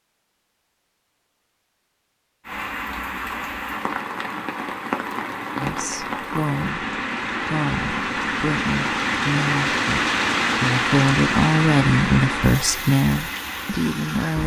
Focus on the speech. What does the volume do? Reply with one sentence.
The volume of the speech goes up.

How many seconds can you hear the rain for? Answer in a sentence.
You can hear the rain for 12 seconds altogether.